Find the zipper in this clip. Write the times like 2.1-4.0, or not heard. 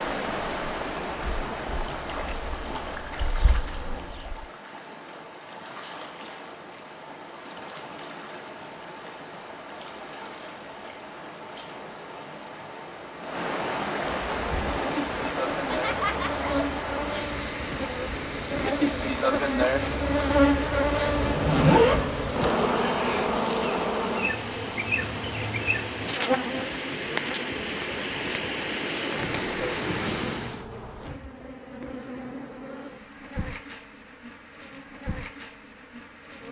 21.1-22.5.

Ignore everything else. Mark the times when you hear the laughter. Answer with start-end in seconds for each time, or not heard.
15.5-16.6.